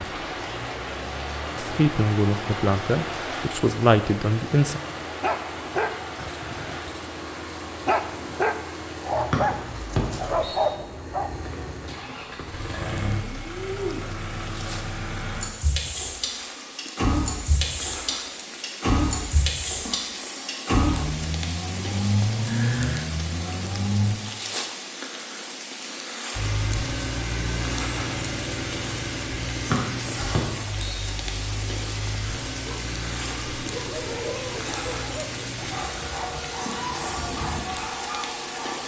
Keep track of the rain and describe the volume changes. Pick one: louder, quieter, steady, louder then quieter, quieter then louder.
quieter then louder.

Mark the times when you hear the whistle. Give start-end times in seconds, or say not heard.
9.3-10.6, 29.7-31.1.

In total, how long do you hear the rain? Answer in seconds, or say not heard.
39 s.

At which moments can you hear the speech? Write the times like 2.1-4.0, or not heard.
1.6-4.8.